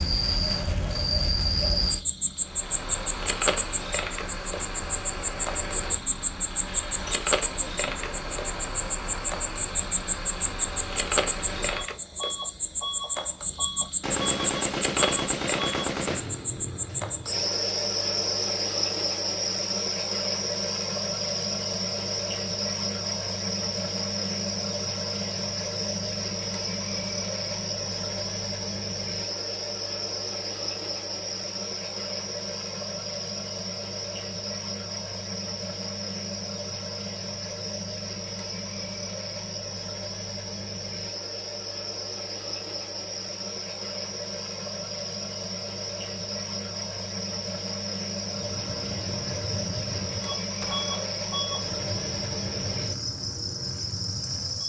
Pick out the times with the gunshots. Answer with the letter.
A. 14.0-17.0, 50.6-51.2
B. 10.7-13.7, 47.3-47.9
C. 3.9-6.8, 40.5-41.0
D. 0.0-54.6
A.